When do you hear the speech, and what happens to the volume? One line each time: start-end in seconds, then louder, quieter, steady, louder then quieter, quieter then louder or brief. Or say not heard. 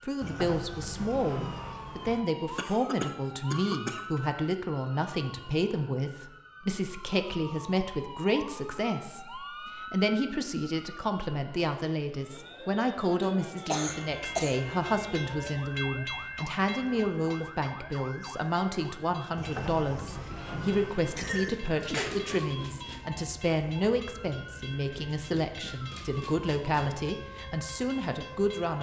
0.0-28.7 steady.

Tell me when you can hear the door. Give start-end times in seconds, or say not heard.
0.2-2.2, 19.4-21.4.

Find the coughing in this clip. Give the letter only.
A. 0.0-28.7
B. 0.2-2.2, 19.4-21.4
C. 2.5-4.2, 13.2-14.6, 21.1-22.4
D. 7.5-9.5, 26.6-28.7
C.